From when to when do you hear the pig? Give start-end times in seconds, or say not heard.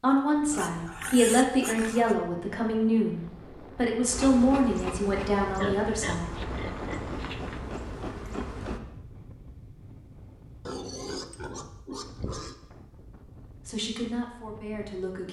0.5-2.1, 5.5-7.6, 10.7-12.6.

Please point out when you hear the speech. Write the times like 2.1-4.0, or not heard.
0.0-6.3, 13.7-15.2.